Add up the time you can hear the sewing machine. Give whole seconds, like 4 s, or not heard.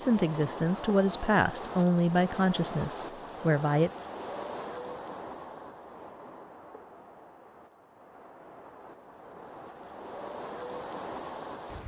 not heard.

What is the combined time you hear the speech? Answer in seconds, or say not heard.
4 s.